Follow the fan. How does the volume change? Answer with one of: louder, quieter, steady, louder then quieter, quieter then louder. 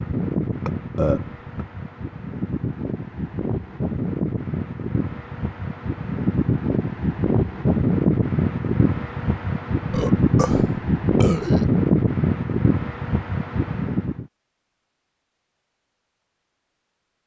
louder.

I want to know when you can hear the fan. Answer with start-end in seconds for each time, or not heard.
0.0-14.2.